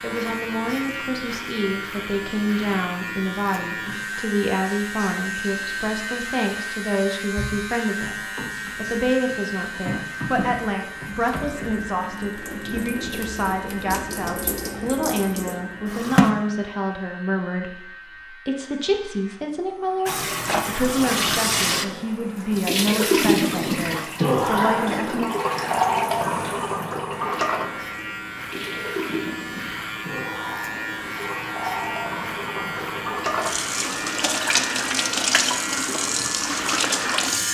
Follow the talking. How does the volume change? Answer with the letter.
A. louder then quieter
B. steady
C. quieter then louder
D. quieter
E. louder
B.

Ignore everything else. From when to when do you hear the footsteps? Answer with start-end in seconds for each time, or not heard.
not heard.